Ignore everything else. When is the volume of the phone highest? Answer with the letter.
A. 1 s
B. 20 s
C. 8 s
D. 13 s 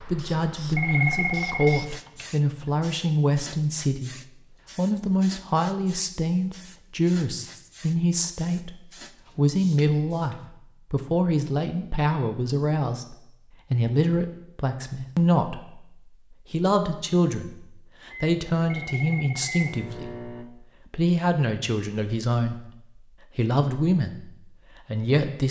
A.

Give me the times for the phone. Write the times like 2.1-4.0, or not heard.
0.8-2.7, 18.7-19.8.